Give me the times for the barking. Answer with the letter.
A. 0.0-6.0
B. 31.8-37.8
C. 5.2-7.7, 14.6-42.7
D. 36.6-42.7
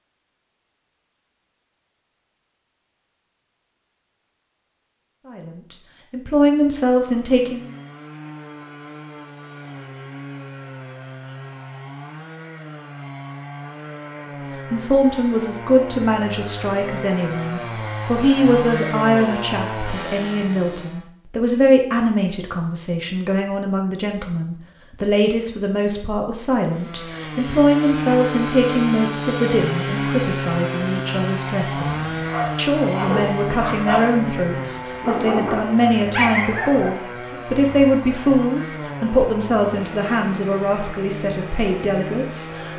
B.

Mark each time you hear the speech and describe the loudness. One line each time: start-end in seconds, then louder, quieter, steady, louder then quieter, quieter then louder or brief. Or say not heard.
5.2-7.7 brief
14.6-42.7 steady.